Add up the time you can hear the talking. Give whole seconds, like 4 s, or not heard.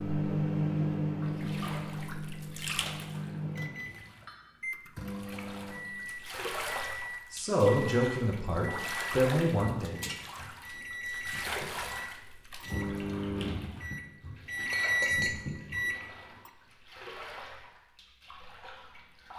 3 s.